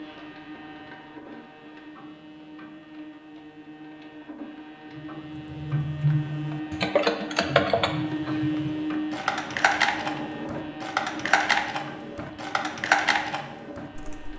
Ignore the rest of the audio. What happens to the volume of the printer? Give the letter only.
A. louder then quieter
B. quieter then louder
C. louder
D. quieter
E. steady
A.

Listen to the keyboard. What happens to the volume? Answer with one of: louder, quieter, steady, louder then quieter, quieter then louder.
steady.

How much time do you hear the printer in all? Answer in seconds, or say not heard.
14 s.